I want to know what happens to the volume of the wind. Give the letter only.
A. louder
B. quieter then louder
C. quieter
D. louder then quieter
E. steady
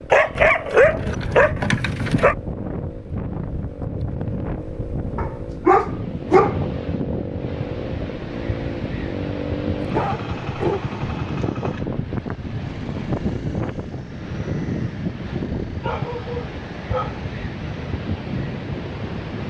E.